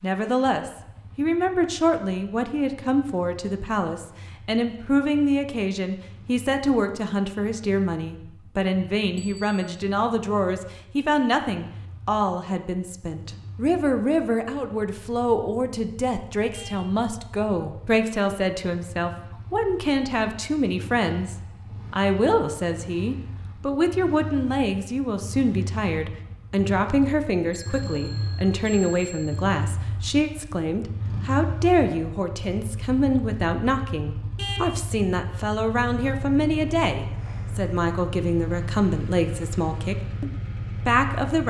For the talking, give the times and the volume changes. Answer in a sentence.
The talking can be heard from 0.0 to 41.4 s, at a steady volume.